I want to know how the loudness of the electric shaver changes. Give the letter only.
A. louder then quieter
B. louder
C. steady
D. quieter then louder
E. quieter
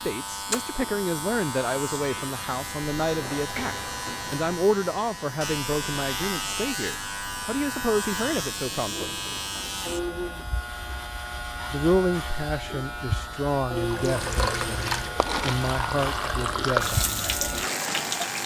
C.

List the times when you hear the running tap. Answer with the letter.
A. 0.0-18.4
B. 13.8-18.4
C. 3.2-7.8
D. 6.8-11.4
B.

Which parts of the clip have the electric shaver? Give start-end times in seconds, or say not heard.
0.0-18.4.